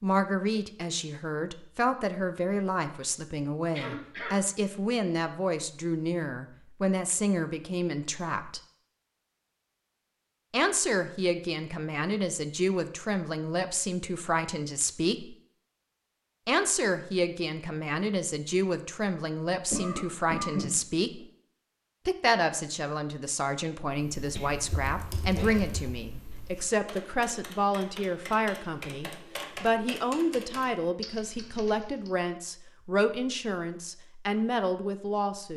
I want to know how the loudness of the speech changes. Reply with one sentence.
The volume of the speech stays about the same.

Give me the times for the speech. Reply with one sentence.
The speech can be heard from 0.0 to 8.6 s, from 10.5 to 15.3 s, from 16.4 to 21.2 s and from 22.1 to 35.5 s.